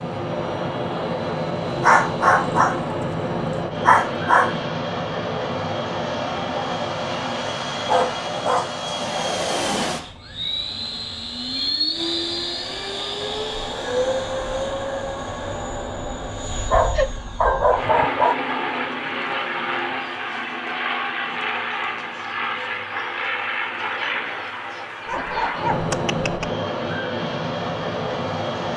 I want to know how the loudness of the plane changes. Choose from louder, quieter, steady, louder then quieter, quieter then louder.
steady.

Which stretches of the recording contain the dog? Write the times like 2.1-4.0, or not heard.
1.8-4.6, 7.8-9.8, 16.7-18.4, 25.1-26.5.